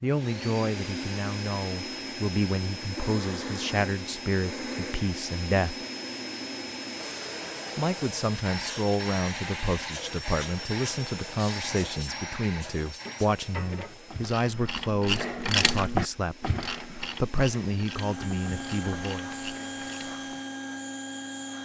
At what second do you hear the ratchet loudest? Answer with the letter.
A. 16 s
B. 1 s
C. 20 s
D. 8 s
A.